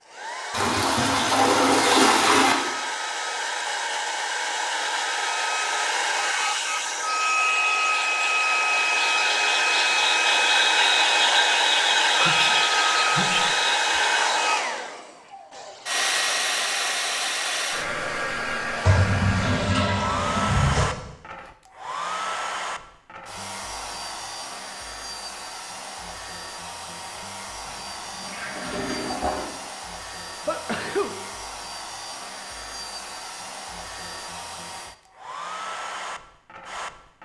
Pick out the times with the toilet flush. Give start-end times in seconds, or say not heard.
0.5-2.5, 18.9-20.9, 27.6-29.5.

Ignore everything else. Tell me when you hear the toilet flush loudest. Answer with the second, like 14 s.
2 s.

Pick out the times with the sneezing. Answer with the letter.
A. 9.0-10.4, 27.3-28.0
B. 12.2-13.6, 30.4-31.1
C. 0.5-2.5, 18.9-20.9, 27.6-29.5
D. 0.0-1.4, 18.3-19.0
B.